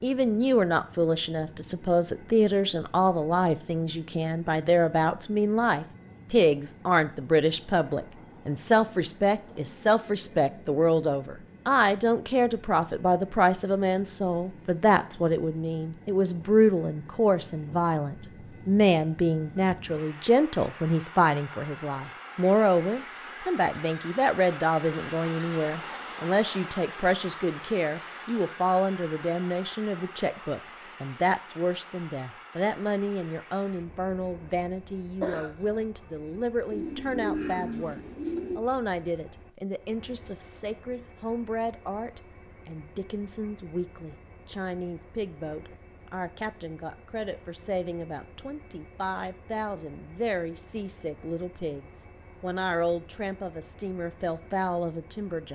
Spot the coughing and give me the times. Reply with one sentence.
The coughing can be heard from 35.2 to 35.8 s.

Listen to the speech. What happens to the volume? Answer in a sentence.
The loudness of the speech goes down.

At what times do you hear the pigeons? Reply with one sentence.
The pigeons can be heard from 36.7 to 38.6 s.